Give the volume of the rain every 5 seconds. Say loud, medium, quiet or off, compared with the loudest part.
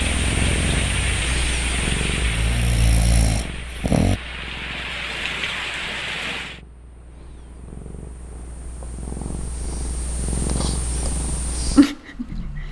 loud, loud, off.